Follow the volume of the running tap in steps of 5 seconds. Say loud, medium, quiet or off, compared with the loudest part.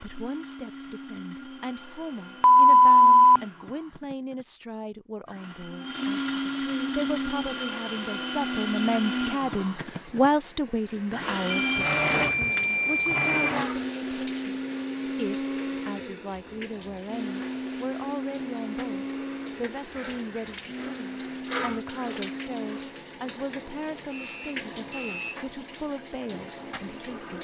off, medium, medium, medium, loud, loud.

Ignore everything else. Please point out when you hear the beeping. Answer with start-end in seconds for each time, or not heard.
2.4-3.4, 11.5-13.5, 23.9-25.4.